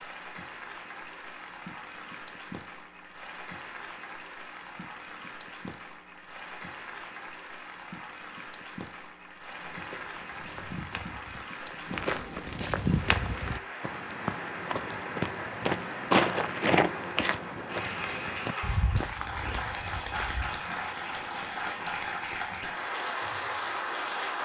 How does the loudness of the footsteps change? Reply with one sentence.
The loudness of the footsteps goes up, then down.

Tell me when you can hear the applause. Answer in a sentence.
You can hear the applause from 0.0 to 24.4 s.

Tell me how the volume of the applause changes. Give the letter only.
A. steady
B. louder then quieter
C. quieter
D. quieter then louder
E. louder
E.